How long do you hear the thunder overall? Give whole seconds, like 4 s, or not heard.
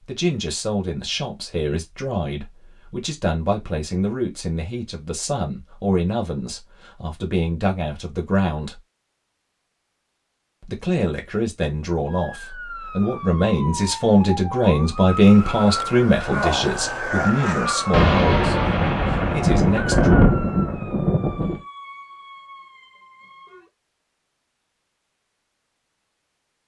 4 s.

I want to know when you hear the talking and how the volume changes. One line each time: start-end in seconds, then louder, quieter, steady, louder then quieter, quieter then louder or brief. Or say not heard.
0.1-8.8 steady
10.6-20.1 louder then quieter.